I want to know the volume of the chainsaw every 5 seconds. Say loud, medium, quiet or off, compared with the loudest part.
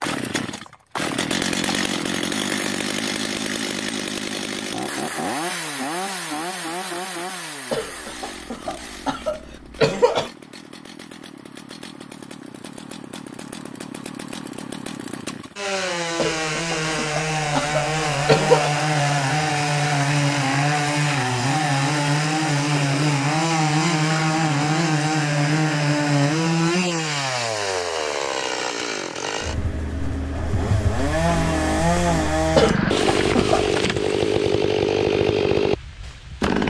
medium, medium, quiet, loud, loud, loud, loud, loud.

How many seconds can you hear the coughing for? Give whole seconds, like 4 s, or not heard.
6 s.